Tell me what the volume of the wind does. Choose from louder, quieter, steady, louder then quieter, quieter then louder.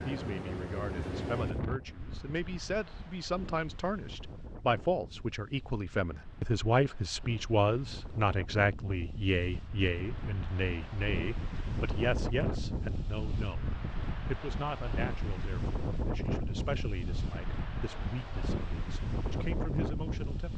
quieter then louder.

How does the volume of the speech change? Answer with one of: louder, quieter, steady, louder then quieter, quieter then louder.
louder then quieter.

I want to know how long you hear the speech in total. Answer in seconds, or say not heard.
20 s.